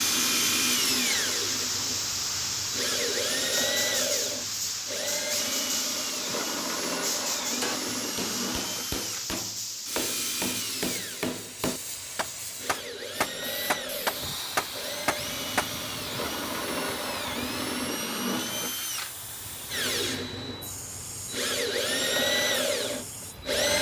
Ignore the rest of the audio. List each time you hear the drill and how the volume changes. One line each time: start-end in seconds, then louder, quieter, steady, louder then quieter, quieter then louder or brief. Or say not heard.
0.0-23.7 quieter then louder.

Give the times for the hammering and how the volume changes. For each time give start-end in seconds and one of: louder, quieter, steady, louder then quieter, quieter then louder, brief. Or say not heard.
7.5-15.7 louder.